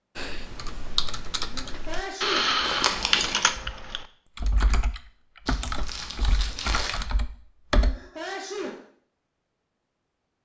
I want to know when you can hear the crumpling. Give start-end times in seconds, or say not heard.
2.6-3.6, 5.5-7.0.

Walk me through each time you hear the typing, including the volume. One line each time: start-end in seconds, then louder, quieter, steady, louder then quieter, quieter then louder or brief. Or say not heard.
0.1-8.0 louder then quieter.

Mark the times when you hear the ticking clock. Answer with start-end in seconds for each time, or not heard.
not heard.